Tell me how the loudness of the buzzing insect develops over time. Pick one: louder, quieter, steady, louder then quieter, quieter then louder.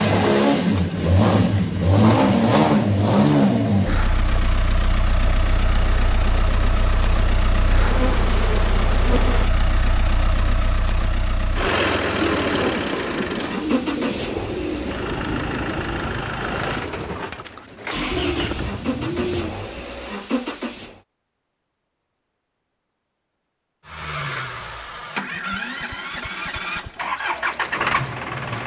louder.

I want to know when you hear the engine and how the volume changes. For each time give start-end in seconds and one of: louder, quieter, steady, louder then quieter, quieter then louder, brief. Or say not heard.
0.0-21.0 quieter
23.9-28.6 louder.